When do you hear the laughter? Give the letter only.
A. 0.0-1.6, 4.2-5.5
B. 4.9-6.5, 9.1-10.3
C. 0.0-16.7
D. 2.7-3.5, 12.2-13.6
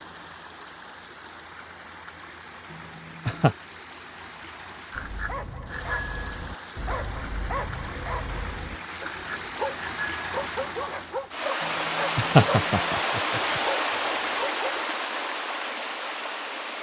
D.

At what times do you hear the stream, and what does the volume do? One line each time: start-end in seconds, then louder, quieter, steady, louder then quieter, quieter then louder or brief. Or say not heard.
0.0-16.7 louder.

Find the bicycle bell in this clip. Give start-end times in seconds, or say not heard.
4.9-6.5, 9.1-10.3.